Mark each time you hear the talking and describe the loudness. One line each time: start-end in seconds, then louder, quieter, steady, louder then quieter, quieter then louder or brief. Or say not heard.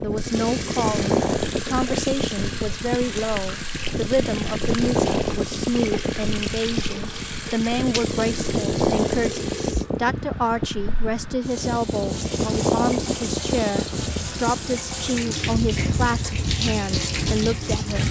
0.0-18.0 steady.